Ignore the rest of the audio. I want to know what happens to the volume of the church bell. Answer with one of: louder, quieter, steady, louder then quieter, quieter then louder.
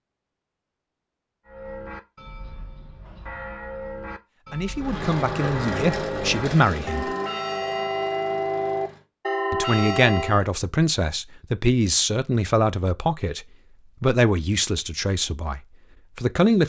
louder.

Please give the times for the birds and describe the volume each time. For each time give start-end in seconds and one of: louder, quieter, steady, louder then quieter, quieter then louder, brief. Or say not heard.
not heard.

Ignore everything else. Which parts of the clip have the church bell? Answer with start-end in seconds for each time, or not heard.
1.4-10.4.